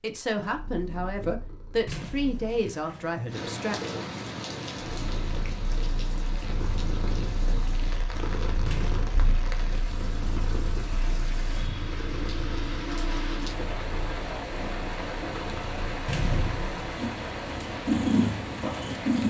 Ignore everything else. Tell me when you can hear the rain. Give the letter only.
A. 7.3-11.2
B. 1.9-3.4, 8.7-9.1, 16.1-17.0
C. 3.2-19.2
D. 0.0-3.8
C.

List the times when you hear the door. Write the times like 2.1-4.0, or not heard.
1.9-3.4, 8.7-9.1, 16.1-17.0.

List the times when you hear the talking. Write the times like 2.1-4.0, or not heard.
0.0-3.8.